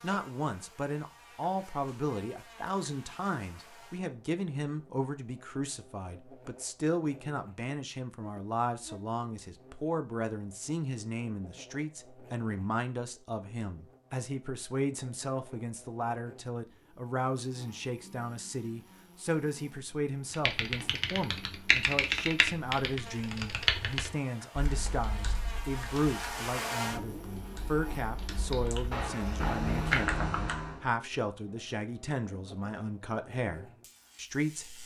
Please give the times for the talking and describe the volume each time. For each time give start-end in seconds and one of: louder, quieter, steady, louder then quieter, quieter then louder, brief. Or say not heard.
0.0-34.8 steady.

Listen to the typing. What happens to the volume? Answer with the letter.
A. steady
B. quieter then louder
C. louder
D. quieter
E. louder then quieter
B.